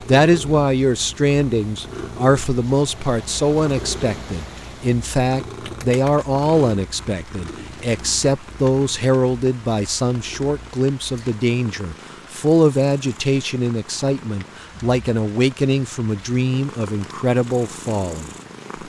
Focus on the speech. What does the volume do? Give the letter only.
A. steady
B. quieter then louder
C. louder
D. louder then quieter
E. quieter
A.